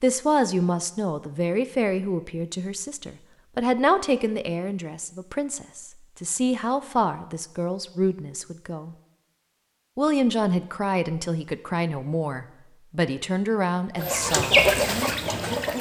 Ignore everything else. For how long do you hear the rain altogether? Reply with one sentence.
The rain can't be heard in this clip.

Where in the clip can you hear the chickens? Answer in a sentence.
The chickens can be heard from 13.9 to 15.7 s.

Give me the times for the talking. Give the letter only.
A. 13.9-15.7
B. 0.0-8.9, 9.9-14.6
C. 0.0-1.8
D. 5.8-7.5
B.